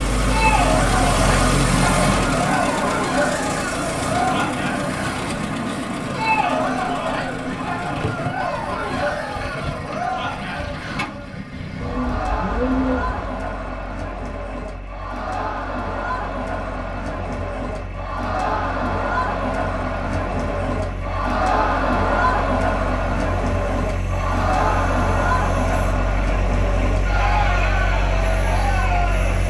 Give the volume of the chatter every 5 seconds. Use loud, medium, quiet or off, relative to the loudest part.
loud, loud, medium, loud, loud, loud.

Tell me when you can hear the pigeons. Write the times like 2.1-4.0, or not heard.
11.8-13.3.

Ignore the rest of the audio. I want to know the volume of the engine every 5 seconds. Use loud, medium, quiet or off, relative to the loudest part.
loud, medium, quiet, quiet, quiet, medium.